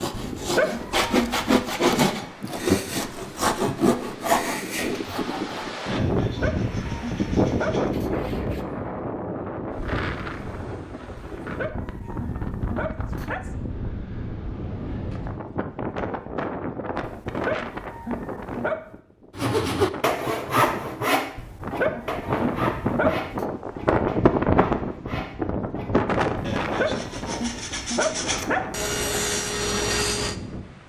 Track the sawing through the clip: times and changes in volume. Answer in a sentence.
You can hear the sawing from 0.0 to 8.7 s, getting quieter; and from 19.4 to 30.4 s, getting quieter then louder.